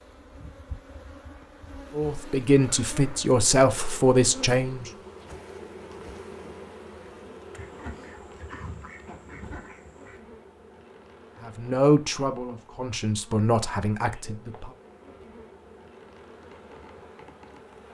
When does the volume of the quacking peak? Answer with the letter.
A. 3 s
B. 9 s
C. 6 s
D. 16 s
B.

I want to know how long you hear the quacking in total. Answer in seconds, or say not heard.
3 s.